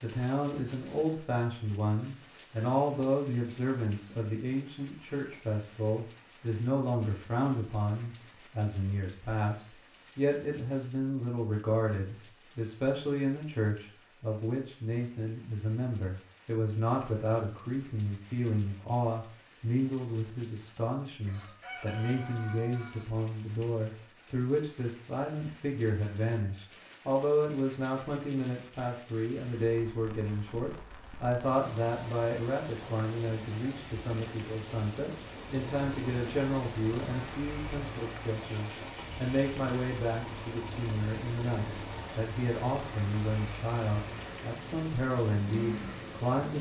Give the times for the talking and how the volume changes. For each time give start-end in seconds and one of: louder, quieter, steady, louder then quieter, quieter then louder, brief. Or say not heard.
0.0-46.5 steady.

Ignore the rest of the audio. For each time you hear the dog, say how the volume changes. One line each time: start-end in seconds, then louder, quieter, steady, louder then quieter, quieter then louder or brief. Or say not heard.
not heard.